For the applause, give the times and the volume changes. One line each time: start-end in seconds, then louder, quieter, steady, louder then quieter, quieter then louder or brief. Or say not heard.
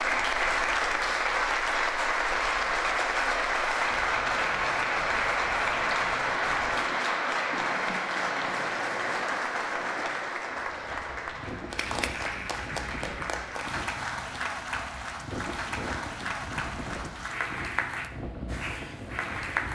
0.0-19.7 quieter.